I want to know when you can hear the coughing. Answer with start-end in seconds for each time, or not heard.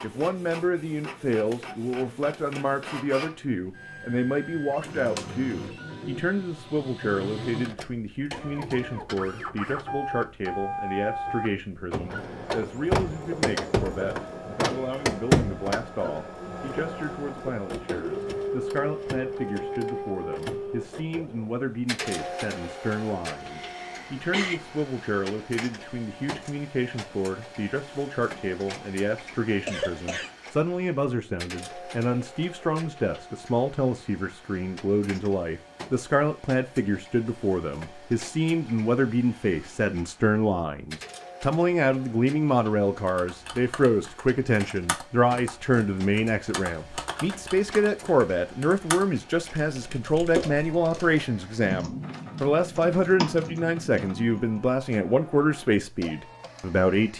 23.5-24.6, 29.5-30.3.